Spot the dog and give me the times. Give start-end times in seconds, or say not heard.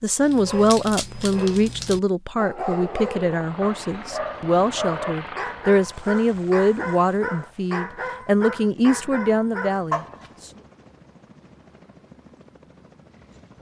0.1-10.3.